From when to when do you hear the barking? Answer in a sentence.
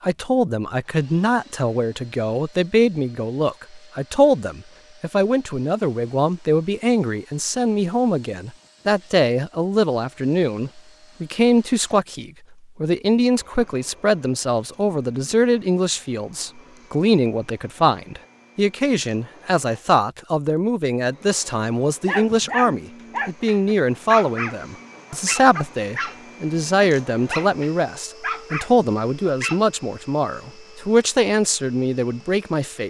The barking can be heard from 22.1 to 29.6 s.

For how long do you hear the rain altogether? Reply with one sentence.
You can't hear the rain here.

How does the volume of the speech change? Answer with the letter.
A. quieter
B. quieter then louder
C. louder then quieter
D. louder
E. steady
E.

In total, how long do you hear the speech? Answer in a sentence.
The speech can be heard for 33 seconds in total.